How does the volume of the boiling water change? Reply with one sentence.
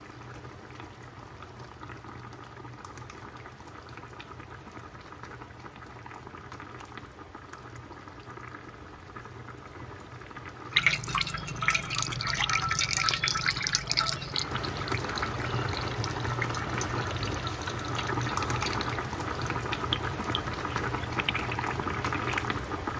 The volume of the boiling water goes up.